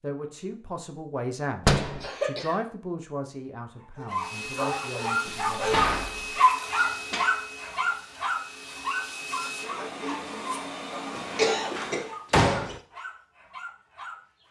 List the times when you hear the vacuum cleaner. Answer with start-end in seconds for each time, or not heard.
4.1-12.2.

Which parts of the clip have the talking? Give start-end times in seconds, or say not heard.
0.0-5.8.